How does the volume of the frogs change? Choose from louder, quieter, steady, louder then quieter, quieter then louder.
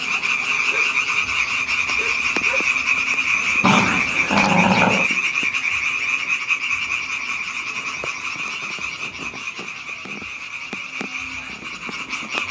quieter.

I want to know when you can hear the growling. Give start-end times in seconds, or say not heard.
3.6-5.1.